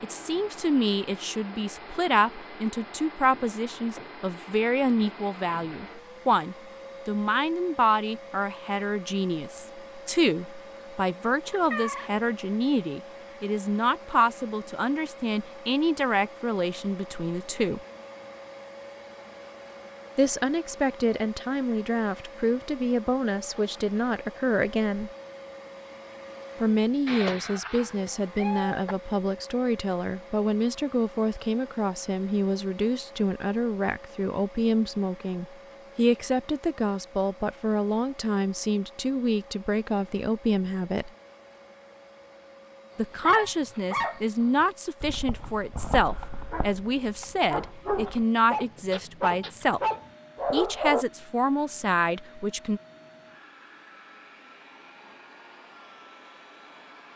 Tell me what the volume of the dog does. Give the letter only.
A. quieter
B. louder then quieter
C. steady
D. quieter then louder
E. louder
D.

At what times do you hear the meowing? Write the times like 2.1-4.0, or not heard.
11.5-12.1, 27.1-28.9, 48.9-49.8.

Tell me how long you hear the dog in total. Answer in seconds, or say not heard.
8 s.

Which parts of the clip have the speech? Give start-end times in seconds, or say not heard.
0.0-17.8, 20.1-25.1, 26.6-41.1, 43.0-49.8, 50.5-52.8.